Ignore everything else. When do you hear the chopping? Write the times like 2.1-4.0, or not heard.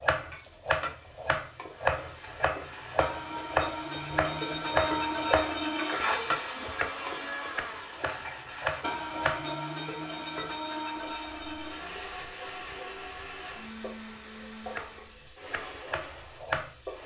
0.0-9.4, 14.6-17.0.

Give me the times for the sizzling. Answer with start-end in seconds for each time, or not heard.
0.1-17.0.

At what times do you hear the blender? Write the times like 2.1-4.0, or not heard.
1.6-17.0.